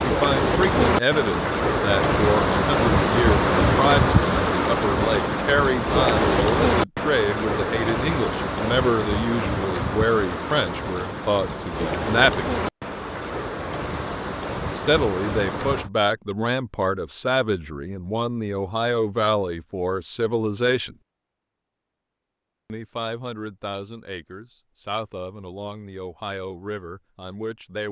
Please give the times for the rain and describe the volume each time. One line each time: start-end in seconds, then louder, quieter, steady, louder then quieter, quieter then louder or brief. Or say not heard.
0.0-15.9 quieter.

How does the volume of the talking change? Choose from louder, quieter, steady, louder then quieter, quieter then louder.
quieter.